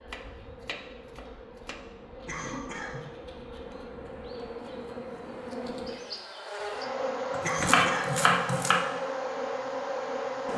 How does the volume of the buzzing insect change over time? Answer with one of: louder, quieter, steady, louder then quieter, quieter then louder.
louder.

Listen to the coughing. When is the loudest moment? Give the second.
8 s.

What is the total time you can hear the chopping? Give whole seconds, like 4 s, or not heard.
3 s.